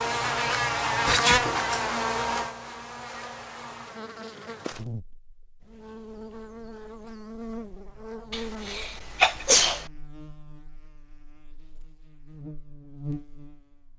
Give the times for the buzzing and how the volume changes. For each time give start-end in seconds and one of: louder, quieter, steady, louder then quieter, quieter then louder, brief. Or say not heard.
0.0-13.9 quieter.